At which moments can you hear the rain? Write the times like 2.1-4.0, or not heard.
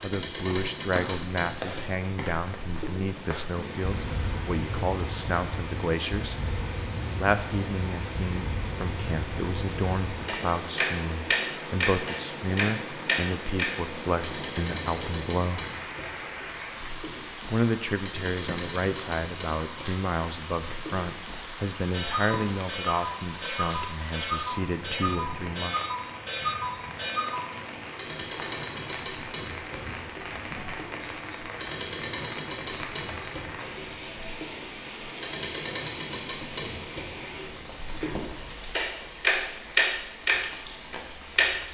0.1-41.6.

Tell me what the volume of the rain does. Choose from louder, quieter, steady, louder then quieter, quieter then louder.
steady.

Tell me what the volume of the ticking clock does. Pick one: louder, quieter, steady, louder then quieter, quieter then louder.
louder.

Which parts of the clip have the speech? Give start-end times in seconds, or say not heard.
0.0-6.4, 7.2-15.7, 17.5-25.8.